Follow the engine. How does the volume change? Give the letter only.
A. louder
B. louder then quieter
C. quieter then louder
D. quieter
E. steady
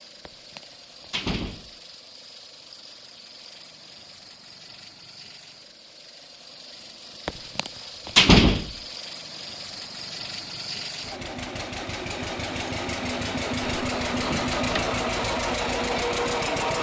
A.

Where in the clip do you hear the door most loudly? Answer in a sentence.
The volume of the door peaks at 8 seconds.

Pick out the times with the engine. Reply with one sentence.
You can hear the engine from 0.0 to 16.7 s.